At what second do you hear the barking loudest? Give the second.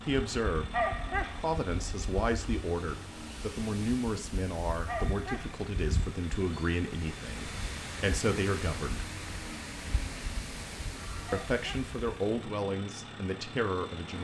1 s.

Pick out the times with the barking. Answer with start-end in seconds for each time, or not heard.
0.7-1.4, 4.8-5.5, 11.2-11.9.